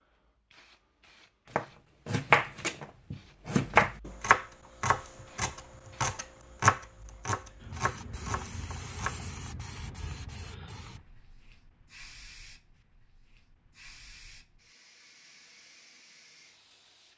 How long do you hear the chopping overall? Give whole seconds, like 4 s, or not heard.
8 s.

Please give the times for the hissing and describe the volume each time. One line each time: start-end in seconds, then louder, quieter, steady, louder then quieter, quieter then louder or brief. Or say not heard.
0.0-17.1 louder then quieter.